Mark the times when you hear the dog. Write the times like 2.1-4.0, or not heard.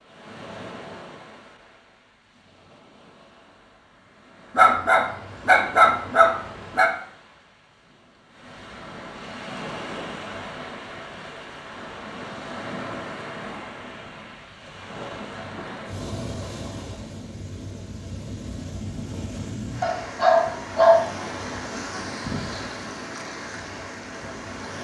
4.5-6.9, 19.8-21.2.